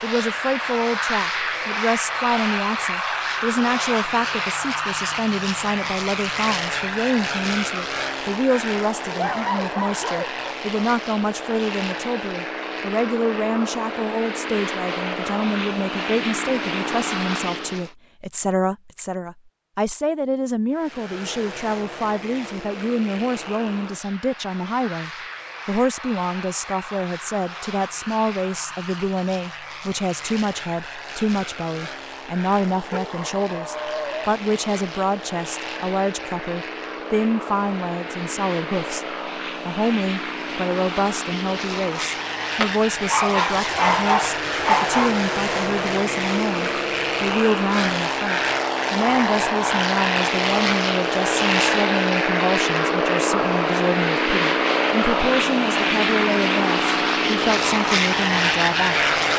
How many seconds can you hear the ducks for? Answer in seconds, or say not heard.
not heard.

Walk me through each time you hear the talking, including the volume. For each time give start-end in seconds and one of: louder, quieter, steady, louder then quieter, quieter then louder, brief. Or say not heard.
0.0-59.1 steady.